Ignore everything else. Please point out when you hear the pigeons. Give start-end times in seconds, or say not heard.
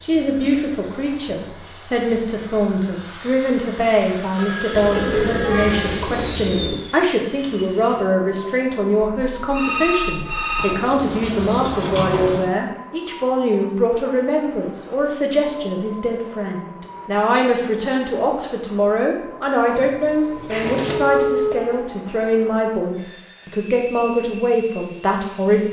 4.7-6.8, 10.6-12.4, 19.7-21.2.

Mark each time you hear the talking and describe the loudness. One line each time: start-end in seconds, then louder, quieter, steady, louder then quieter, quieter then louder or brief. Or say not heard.
0.0-25.6 steady.